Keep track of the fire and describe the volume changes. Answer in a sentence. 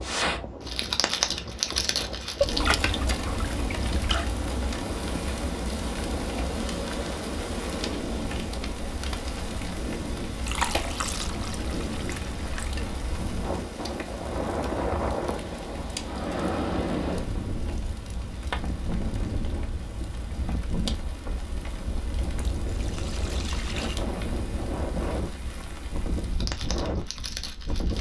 The volume of the fire goes down.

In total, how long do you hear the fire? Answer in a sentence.
The fire can be heard for 28 seconds in total.